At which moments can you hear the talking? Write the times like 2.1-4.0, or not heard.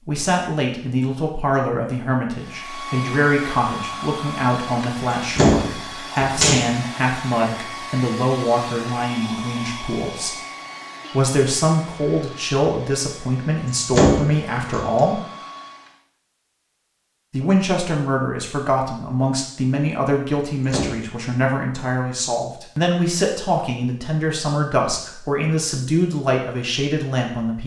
0.1-10.3, 11.1-15.2, 17.3-27.6.